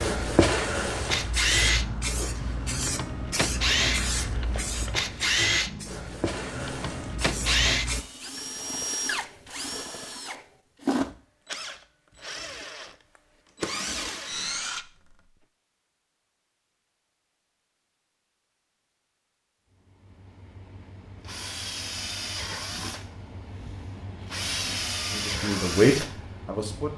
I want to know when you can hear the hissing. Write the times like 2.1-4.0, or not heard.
0.0-8.1.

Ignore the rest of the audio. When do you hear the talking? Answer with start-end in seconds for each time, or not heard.
25.1-26.9.